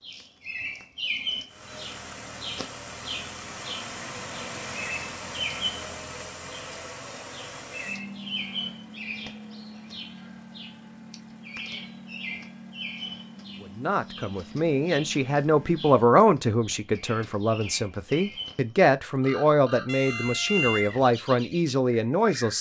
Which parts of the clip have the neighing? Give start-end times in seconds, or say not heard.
not heard.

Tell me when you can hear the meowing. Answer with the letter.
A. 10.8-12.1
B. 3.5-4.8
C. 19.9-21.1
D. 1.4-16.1
C.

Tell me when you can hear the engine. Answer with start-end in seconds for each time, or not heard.
1.4-16.1.